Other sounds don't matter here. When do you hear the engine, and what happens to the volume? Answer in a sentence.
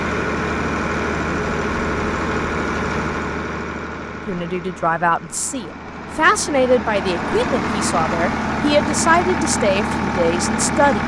The engine can be heard from 0.0 to 11.0 s, getting quieter then louder.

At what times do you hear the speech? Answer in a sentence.
The speech can be heard from 4.2 to 11.0 s.